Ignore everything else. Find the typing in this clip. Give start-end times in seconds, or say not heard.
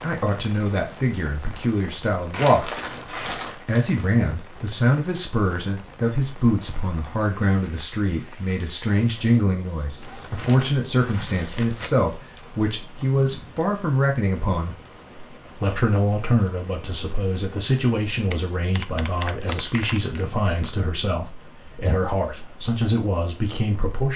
18.3-20.0.